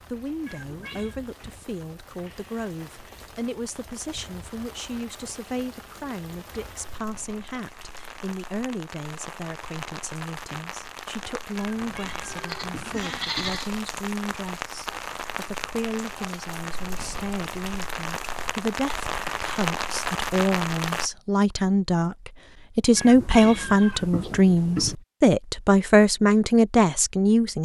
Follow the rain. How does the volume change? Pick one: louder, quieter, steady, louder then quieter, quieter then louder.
louder.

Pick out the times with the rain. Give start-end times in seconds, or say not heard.
0.0-21.1.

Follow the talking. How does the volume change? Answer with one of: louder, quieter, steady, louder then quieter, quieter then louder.
louder.